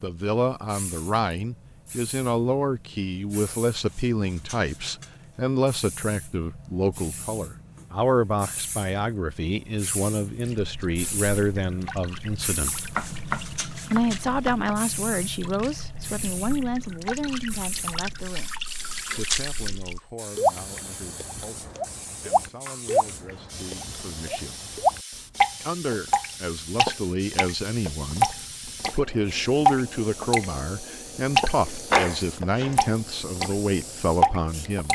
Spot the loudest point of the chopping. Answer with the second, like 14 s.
32 s.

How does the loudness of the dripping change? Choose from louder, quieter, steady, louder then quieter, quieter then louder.
louder.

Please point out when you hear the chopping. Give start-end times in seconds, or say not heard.
12.7-14.8, 31.6-32.8.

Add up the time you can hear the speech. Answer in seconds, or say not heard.
32 s.